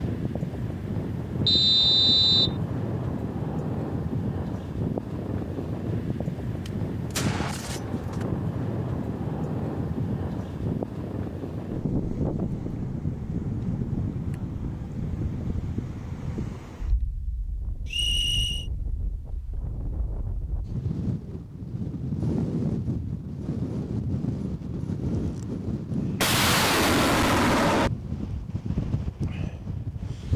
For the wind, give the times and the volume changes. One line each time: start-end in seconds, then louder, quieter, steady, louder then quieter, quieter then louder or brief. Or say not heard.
0.0-30.3 steady.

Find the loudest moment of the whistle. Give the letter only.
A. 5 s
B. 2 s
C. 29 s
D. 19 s
B.